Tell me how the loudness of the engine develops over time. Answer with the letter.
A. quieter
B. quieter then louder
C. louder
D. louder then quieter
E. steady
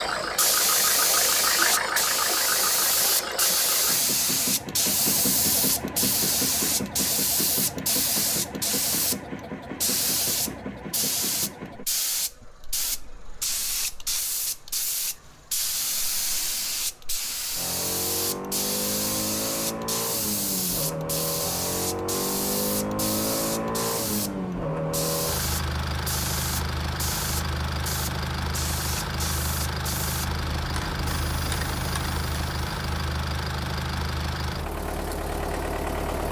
B.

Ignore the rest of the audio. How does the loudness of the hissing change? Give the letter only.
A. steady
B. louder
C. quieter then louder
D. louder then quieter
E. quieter
E.